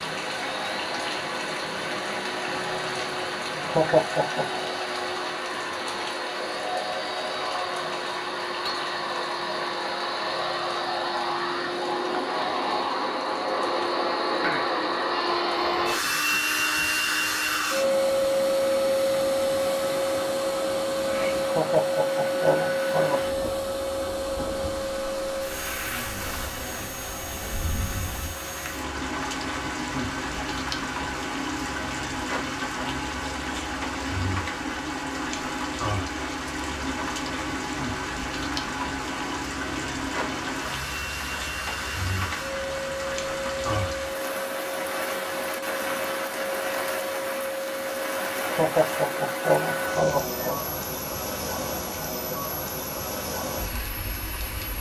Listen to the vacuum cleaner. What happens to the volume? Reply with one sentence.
The volume of the vacuum cleaner goes up, then down.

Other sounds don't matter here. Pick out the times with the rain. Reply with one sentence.
You can hear the rain from 0.0 to 54.7 s.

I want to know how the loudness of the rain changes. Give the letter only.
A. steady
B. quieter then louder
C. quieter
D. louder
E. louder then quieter
B.